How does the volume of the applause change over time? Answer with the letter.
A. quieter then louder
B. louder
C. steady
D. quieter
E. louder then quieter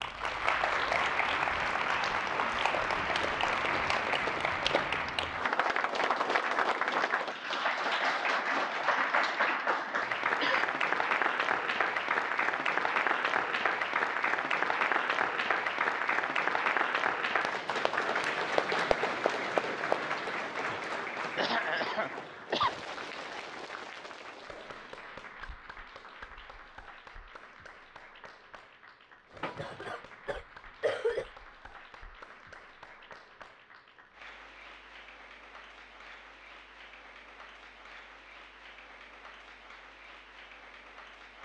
D.